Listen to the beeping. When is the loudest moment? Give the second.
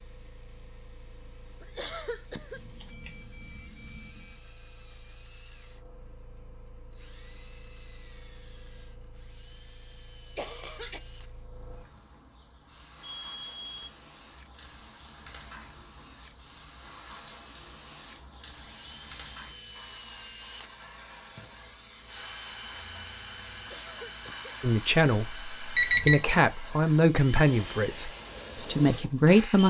26 s.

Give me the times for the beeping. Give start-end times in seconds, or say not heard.
2.5-4.4, 13.0-13.9, 25.8-26.4.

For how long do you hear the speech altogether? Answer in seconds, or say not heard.
5 s.